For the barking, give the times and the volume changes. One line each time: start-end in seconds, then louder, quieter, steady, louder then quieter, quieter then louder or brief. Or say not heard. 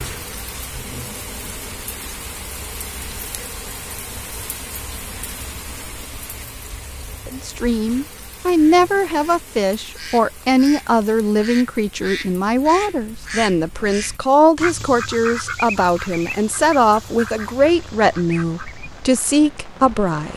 not heard.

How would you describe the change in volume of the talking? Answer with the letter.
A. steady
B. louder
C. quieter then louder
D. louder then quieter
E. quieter
A.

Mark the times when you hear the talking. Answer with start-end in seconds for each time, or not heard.
7.2-20.3.